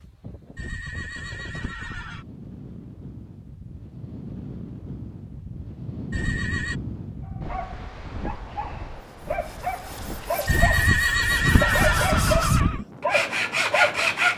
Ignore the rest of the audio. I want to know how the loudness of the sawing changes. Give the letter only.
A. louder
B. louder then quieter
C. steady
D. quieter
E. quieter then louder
A.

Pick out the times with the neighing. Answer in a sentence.
You can hear the neighing from 0.6 to 2.2 s, from 6.1 to 6.8 s and from 10.4 to 12.8 s.